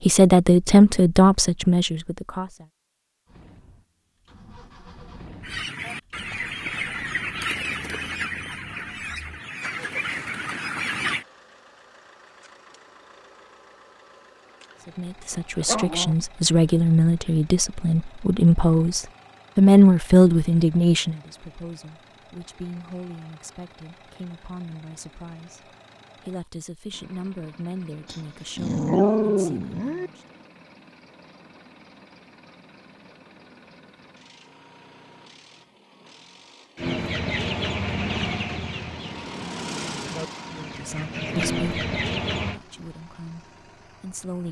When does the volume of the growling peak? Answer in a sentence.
The volume of the growling peaks at 29 seconds.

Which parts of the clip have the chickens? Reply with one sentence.
You can hear the chickens from 5.4 to 11.2 s and from 36.8 to 42.6 s.